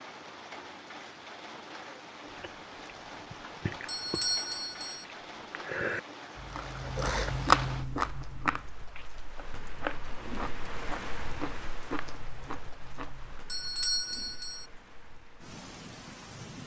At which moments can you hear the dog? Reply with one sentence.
The dog can't be heard in this clip.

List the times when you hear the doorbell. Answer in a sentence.
You can hear the doorbell from 3.9 to 5.0 s and from 13.4 to 14.7 s.